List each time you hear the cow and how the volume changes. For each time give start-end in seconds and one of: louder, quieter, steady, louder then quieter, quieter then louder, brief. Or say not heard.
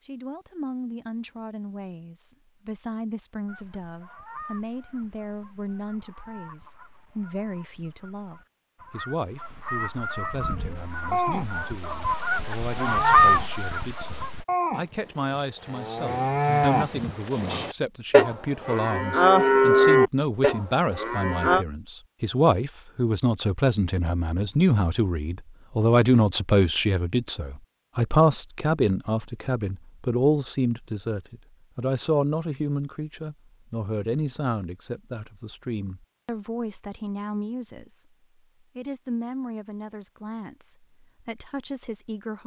10.3-21.6 louder.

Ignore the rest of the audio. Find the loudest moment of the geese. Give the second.
13 s.